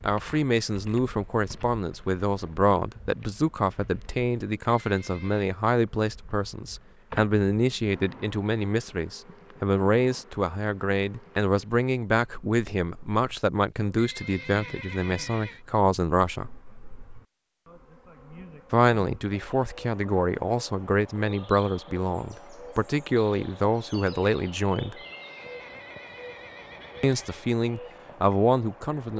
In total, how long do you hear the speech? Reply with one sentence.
You can hear the speech for 25 seconds altogether.